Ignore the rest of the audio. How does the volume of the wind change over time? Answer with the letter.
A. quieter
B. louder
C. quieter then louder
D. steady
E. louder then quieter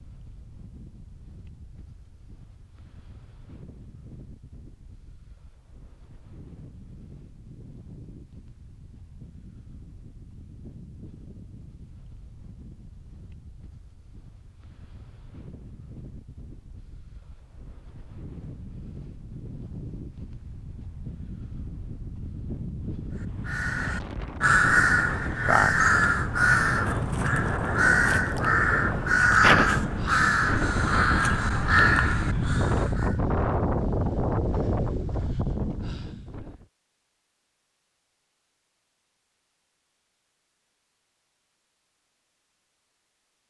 B.